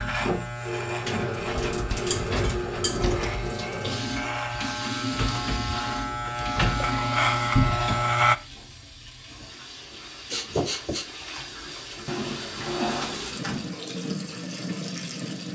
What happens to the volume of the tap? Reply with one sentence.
The loudness of the tap goes down, then up.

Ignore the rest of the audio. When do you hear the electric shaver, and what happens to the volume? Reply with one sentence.
You can hear the electric shaver from 0.0 to 8.3 s, getting louder.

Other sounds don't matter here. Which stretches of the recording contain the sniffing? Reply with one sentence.
The sniffing can be heard from 10.3 to 11.1 s.